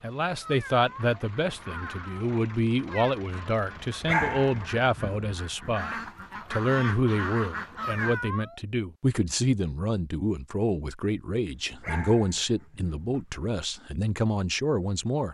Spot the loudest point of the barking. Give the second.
4 s.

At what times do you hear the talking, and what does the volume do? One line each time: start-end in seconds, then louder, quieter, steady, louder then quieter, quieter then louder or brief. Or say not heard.
0.0-15.2 steady.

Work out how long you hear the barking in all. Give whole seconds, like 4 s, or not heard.
4 s.